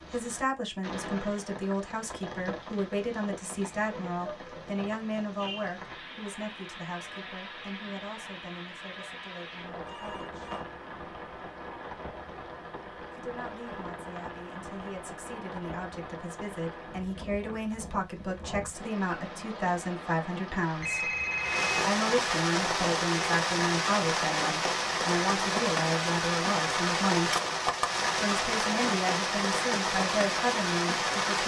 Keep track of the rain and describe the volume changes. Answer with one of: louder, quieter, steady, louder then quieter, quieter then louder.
louder.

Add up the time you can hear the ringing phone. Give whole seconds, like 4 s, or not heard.
2 s.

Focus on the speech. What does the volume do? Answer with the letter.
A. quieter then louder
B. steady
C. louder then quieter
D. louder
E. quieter
A.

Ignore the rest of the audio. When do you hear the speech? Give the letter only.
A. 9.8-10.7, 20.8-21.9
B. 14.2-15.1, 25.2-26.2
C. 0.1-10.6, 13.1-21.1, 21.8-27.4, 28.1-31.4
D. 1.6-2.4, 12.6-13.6
C.